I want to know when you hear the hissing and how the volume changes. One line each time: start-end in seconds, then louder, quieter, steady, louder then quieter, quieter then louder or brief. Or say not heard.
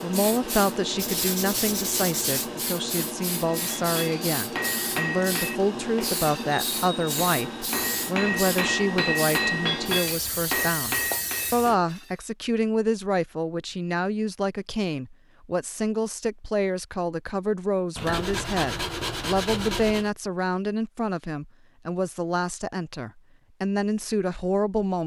0.0-11.8 steady.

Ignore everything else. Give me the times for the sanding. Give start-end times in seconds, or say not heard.
0.9-2.5, 17.9-20.1.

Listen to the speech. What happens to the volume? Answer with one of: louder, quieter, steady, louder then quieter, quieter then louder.
steady.